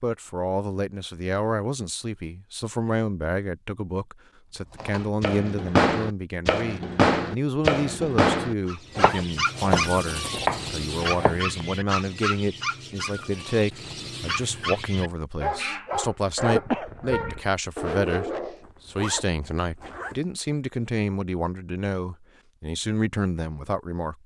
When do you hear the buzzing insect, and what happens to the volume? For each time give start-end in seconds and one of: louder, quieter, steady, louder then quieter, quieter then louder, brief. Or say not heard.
not heard.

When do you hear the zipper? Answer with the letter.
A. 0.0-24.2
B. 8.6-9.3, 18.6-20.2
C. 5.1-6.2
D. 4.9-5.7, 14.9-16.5
B.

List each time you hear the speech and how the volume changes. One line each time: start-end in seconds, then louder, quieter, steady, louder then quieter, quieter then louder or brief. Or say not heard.
0.0-24.2 steady.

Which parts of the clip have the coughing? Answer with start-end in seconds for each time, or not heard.
16.4-17.4.